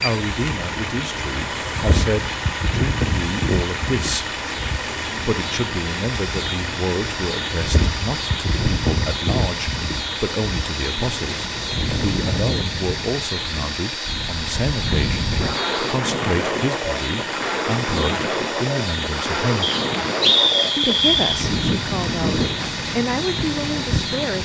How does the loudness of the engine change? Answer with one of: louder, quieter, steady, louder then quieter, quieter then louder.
steady.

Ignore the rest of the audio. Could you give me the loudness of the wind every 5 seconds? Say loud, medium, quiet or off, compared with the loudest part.
loud, loud, medium, loud, loud.